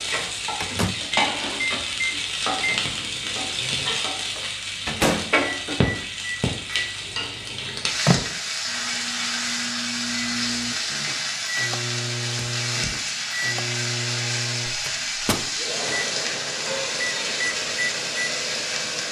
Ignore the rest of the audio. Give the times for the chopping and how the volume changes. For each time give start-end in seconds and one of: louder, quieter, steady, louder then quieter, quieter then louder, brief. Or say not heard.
not heard.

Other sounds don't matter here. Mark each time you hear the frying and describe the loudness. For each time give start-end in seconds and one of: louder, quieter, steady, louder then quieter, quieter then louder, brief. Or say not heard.
0.0-19.0 steady.